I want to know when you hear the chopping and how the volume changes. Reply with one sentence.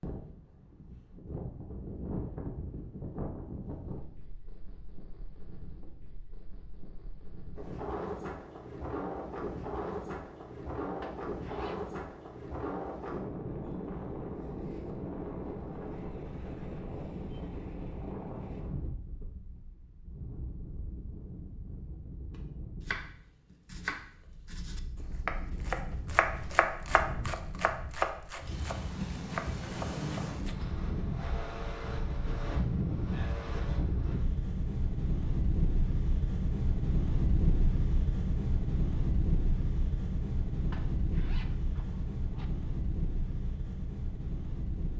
The chopping can be heard from 22.8 to 30.6 s, getting louder then quieter.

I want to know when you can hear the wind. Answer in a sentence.
You can hear the wind from 0.0 to 44.9 s.